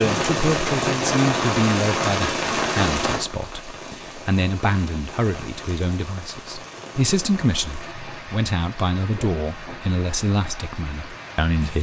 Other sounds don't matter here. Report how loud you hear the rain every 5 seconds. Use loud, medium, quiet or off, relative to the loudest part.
loud, quiet, quiet.